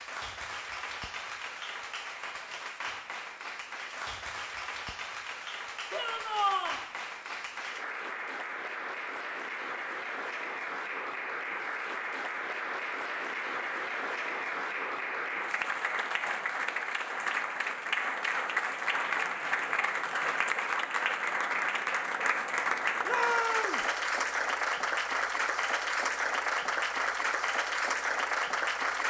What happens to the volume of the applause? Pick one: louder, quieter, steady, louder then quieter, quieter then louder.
louder.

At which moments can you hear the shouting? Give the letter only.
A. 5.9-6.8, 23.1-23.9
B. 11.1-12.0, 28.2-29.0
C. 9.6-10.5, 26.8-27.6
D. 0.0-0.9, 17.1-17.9
A.